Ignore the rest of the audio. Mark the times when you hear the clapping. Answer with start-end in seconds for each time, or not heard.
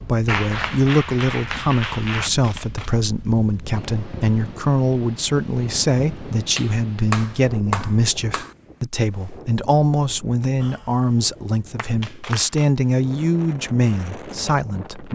0.2-2.3, 6.5-8.6, 10.5-12.5.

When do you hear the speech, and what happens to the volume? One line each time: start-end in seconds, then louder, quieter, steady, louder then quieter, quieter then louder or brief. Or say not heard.
0.1-15.1 steady.